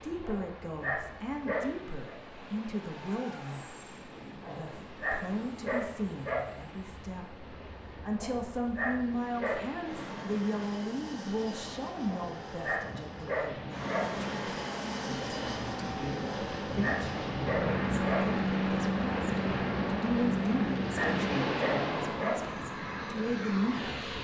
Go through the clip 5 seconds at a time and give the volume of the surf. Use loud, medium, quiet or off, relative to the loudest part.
quiet, quiet, medium, loud, loud.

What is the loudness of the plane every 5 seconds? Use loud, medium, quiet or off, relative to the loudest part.
quiet, quiet, medium, loud, loud.